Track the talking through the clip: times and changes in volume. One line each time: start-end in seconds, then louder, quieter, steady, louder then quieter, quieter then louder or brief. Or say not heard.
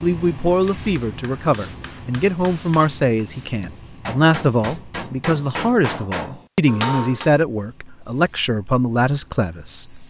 0.0-10.0 steady.